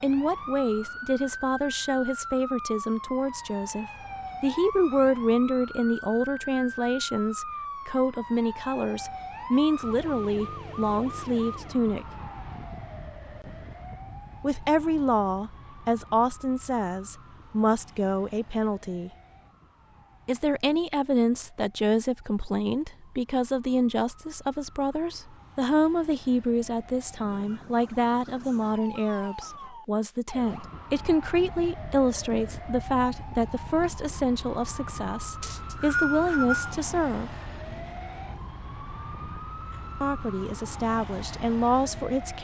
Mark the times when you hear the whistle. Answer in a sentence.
The whistle can be heard from 35.4 to 36.8 s.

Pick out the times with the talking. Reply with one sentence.
The talking can be heard from 0.0 to 12.1 s, from 14.4 to 19.1 s, from 20.2 to 37.4 s and from 40.0 to 42.3 s.